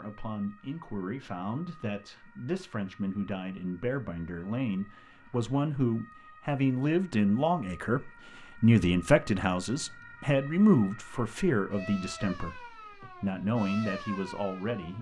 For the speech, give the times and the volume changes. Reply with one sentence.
The speech can be heard from 0.0 to 14.9 s, getting louder then quieter.